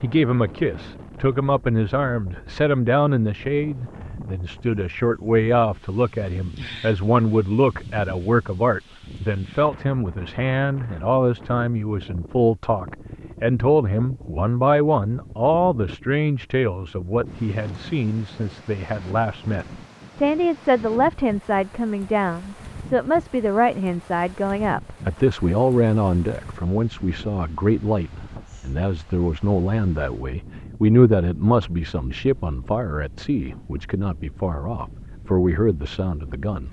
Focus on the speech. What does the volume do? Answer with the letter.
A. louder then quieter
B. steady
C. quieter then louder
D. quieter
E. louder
B.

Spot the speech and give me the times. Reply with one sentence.
You can hear the speech from 0.0 to 36.6 s.